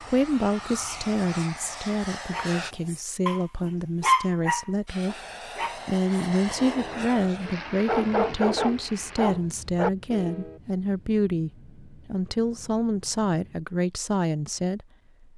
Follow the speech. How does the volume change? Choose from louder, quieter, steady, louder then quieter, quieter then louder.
steady.